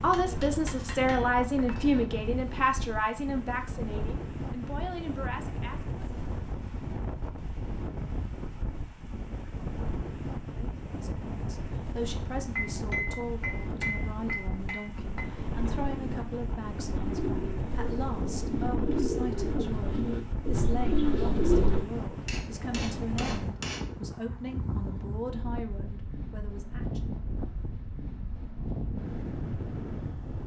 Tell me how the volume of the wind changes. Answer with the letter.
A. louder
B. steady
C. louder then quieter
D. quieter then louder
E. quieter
B.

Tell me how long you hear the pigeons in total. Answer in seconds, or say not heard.
7 s.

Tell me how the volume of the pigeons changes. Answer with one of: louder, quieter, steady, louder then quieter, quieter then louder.
louder.